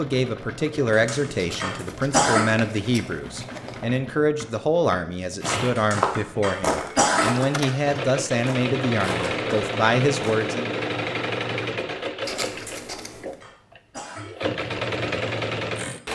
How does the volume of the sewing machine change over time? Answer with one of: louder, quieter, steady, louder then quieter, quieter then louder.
louder.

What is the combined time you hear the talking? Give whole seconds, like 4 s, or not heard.
11 s.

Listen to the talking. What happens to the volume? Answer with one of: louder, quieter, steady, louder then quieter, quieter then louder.
steady.